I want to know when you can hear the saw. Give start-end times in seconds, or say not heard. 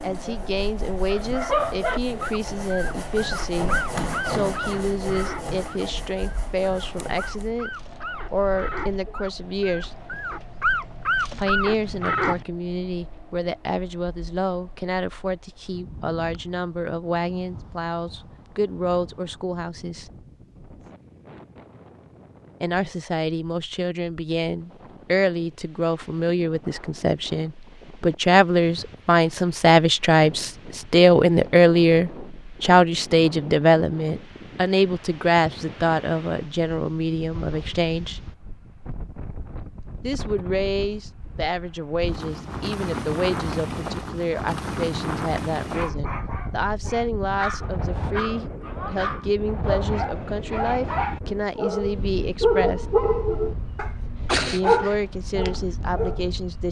0.0-7.5.